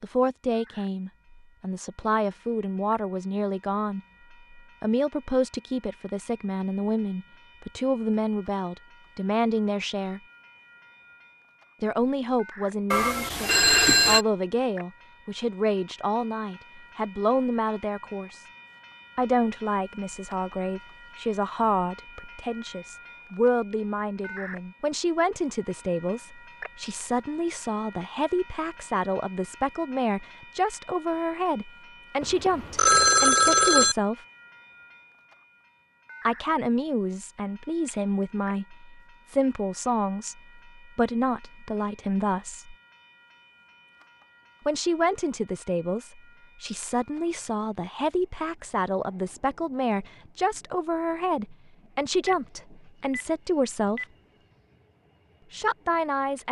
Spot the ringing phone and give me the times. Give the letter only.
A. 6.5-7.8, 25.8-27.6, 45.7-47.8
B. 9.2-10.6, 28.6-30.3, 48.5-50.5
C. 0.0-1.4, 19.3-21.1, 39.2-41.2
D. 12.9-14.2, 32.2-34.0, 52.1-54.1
D.